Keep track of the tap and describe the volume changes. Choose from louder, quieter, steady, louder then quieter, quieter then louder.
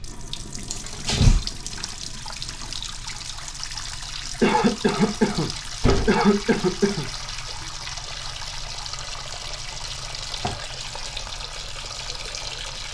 steady.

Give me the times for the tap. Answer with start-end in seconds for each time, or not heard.
0.0-12.9.